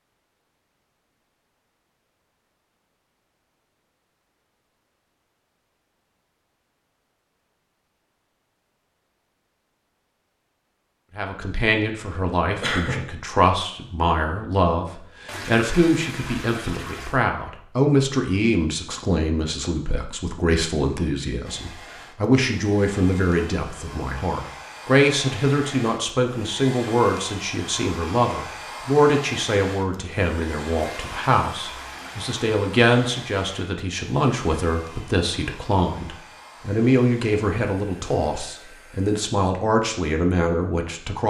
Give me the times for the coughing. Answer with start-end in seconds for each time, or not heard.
12.6-13.0.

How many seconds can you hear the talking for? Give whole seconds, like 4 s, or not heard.
30 s.